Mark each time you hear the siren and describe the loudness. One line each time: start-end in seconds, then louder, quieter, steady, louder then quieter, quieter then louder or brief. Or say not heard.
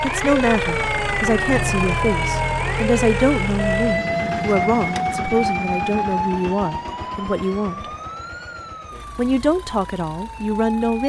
0.0-11.0 quieter.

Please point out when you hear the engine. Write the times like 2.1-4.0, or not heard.
0.0-11.0.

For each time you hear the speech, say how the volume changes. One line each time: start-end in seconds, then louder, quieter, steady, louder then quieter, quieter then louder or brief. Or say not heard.
0.0-7.8 steady
9.2-11.0 brief.